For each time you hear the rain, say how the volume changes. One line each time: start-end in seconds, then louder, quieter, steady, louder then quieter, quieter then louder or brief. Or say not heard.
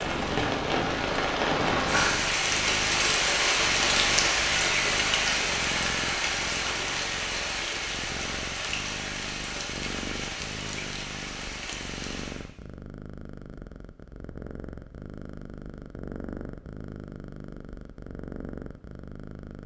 0.0-12.4 quieter.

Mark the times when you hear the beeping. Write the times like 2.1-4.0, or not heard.
not heard.